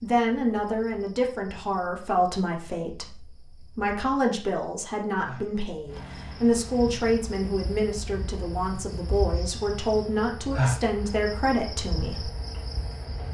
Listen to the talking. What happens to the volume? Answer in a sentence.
The volume of the talking stays about the same.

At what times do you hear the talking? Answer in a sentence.
The talking can be heard from 0.0 to 12.3 s.